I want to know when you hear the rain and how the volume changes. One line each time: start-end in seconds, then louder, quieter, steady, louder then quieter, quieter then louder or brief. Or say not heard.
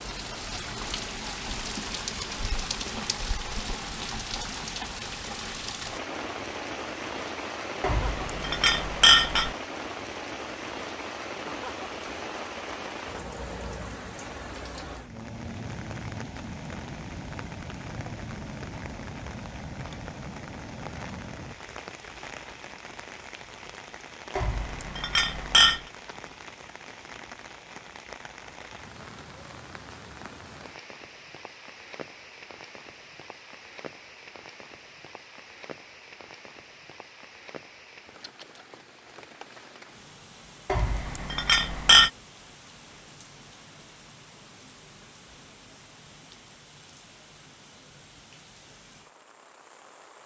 0.0-50.2 quieter.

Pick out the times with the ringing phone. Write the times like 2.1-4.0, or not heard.
not heard.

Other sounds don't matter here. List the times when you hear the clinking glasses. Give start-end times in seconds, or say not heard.
7.8-9.6, 24.4-25.8, 40.6-42.1.